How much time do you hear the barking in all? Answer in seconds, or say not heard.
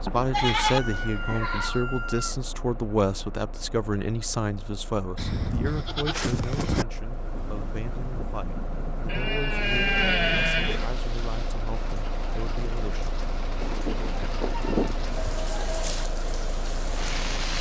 not heard.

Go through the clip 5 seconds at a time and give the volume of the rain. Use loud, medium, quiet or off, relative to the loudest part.
off, medium, medium, loud.